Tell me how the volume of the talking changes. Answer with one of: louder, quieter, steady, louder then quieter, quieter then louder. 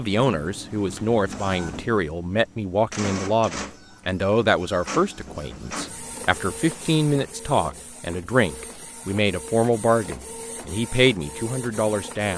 steady.